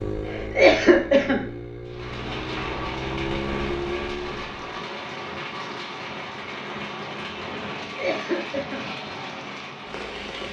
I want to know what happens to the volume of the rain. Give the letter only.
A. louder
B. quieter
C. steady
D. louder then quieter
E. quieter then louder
C.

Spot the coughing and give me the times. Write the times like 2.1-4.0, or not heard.
0.2-1.4, 7.8-8.8.